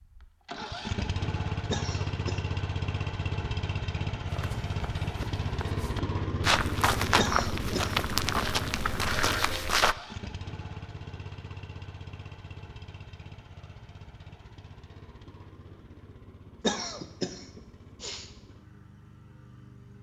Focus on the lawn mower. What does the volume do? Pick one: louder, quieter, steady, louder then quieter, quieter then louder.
quieter.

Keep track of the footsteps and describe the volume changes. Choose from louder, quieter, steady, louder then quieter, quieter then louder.
louder.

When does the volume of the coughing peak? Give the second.
17 s.